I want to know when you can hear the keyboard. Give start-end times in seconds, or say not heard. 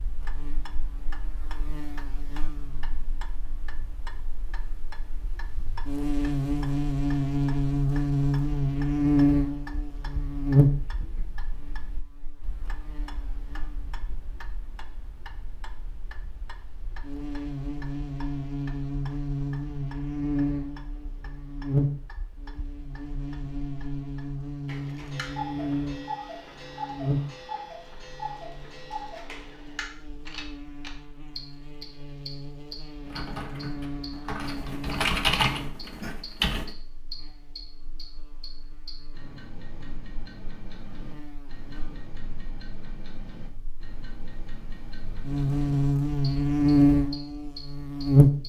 33.0-36.7.